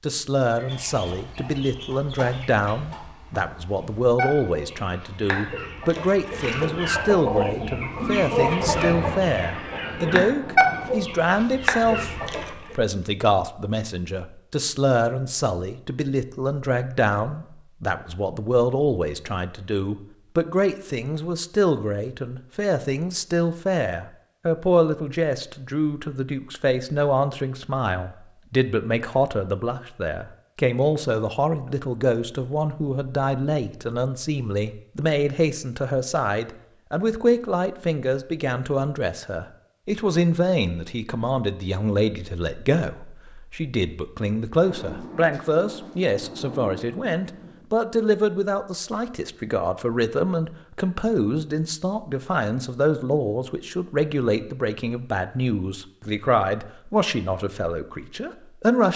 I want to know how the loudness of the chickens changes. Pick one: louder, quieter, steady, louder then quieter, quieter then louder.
louder.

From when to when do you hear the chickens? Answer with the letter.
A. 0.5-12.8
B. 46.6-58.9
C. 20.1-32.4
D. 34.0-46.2
A.